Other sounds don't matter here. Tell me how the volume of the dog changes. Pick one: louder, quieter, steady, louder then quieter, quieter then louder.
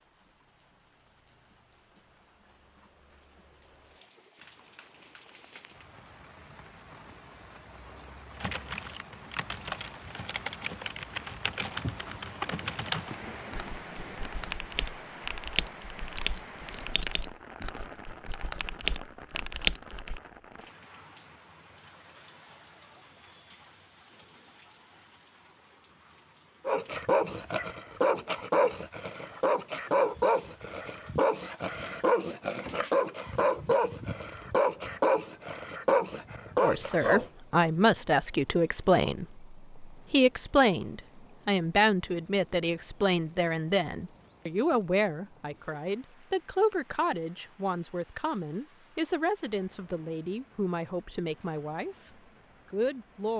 steady.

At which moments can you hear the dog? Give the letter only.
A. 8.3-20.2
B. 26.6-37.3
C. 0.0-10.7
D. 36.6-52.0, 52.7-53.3
B.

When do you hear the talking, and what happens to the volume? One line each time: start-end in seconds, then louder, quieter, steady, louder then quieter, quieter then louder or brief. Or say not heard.
36.6-52.0 quieter
52.7-53.3 brief.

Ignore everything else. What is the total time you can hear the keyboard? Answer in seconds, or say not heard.
12 s.